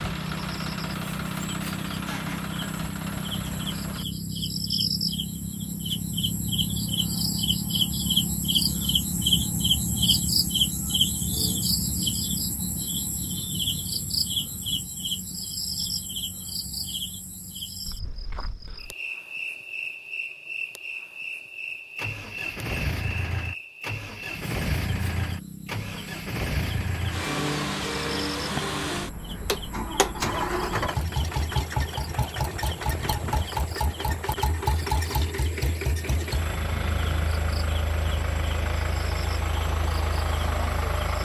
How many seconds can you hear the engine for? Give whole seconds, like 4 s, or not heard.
23 s.